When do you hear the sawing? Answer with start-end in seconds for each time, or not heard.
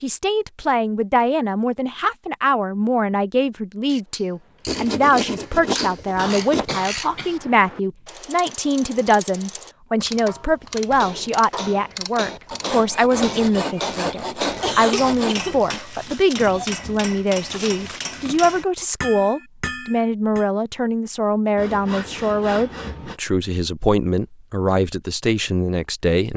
4.7-6.7, 12.5-15.3, 21.6-23.2.